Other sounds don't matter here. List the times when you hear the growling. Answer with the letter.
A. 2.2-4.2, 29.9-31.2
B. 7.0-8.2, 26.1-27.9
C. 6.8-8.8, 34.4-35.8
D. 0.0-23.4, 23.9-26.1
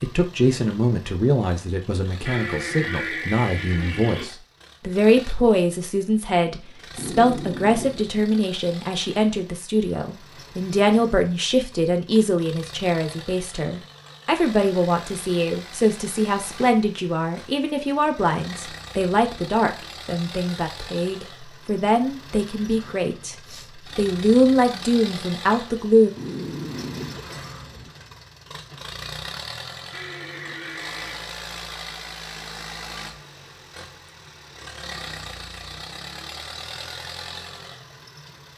B.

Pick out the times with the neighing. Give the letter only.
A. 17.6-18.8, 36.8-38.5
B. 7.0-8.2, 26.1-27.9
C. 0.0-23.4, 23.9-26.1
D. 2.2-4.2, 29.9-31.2
D.